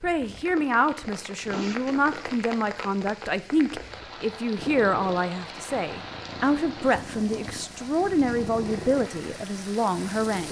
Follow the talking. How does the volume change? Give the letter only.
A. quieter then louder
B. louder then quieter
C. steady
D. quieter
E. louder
C.